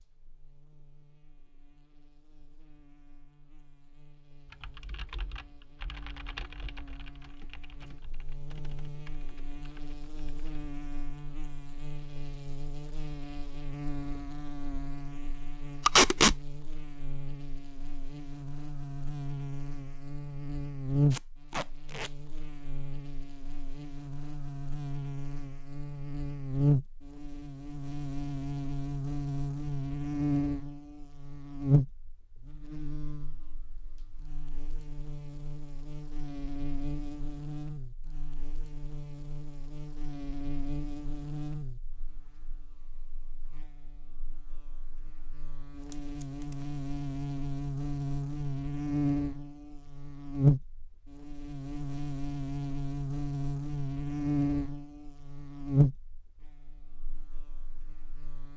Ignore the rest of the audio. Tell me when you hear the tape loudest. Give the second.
16 s.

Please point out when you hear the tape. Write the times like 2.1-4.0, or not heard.
15.8-16.4, 21.1-22.1, 45.7-46.5.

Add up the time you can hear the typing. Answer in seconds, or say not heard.
6 s.